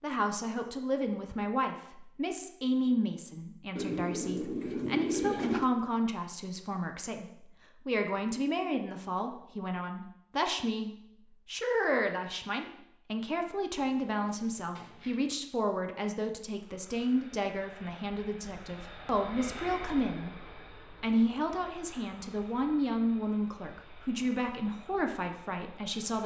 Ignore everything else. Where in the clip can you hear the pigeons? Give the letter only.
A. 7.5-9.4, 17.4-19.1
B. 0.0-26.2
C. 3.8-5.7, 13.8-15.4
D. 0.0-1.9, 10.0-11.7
C.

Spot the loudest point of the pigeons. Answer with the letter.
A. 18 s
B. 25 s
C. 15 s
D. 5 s
D.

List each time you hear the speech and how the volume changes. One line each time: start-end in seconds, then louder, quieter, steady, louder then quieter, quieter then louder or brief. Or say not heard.
0.0-26.2 steady.